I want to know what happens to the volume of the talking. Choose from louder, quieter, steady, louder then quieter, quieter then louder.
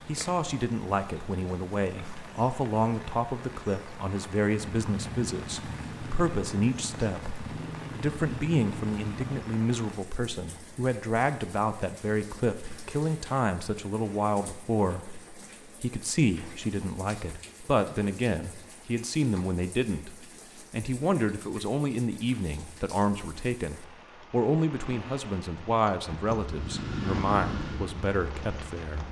steady.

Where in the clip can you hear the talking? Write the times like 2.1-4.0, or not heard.
0.1-29.0.